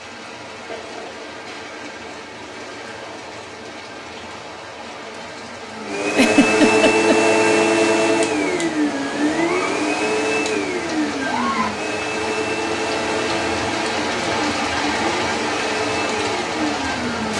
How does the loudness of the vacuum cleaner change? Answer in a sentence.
The loudness of the vacuum cleaner goes down.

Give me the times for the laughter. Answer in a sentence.
The laughter can be heard from 6.1 to 7.2 s.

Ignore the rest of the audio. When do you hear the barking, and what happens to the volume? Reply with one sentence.
You can't hear the barking here.